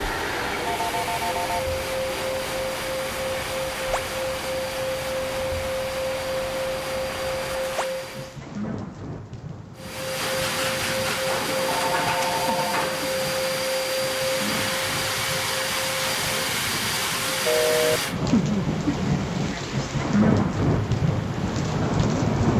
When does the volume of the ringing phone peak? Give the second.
18 s.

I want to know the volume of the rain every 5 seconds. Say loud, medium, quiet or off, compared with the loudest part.
quiet, quiet, quiet, medium, loud.